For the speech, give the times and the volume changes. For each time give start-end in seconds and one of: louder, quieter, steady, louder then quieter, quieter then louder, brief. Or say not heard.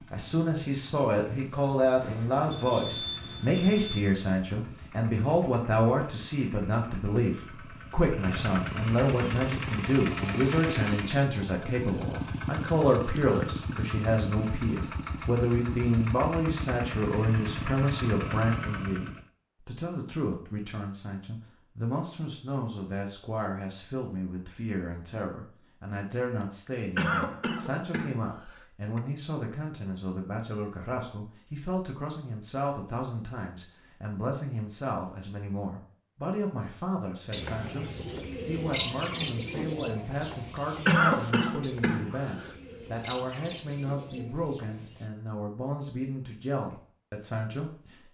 0.1-48.0 quieter.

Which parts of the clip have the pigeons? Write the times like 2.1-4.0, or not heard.
37.3-45.1.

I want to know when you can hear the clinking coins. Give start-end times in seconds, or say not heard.
not heard.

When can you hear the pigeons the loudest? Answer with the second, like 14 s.
39 s.